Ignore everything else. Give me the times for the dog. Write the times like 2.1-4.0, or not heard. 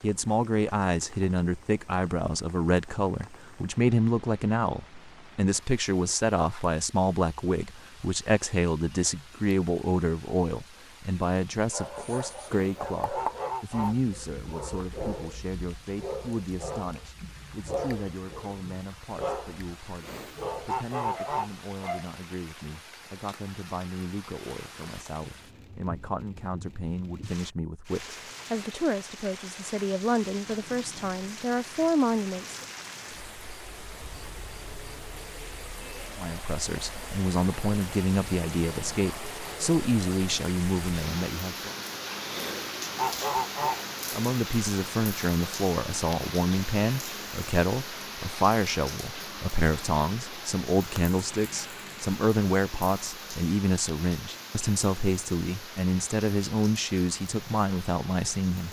11.7-22.1.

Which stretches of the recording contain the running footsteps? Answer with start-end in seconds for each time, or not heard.
not heard.